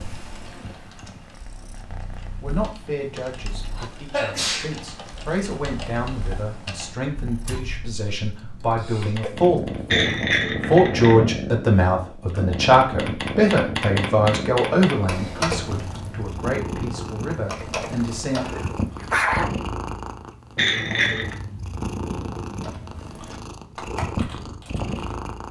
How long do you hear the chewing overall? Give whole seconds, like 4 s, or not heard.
not heard.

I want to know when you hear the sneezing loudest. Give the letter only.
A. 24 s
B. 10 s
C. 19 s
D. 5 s
C.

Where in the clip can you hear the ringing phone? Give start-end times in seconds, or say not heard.
not heard.